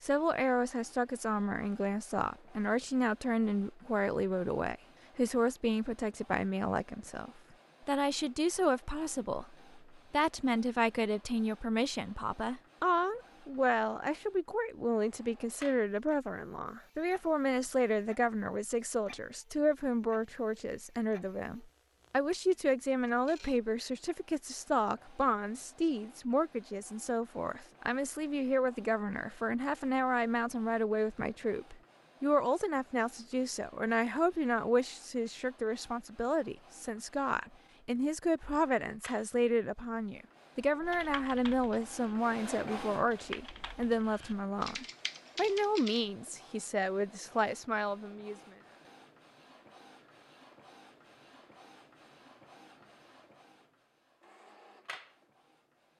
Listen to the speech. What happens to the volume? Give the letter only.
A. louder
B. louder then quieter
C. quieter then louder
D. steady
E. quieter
D.